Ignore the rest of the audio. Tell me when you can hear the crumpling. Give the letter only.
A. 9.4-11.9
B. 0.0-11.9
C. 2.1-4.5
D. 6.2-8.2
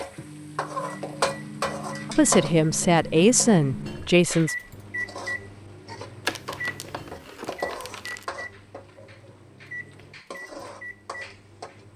D.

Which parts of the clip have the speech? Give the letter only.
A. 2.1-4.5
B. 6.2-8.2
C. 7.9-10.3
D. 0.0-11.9
A.